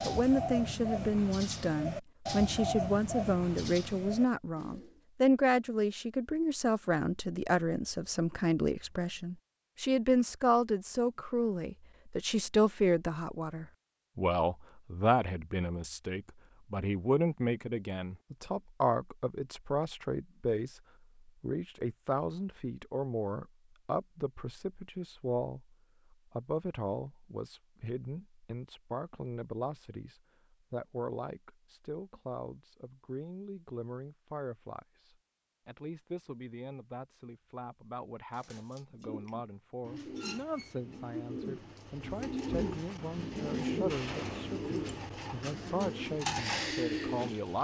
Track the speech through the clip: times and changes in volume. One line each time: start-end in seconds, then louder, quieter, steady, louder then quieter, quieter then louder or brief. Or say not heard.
0.0-47.5 quieter.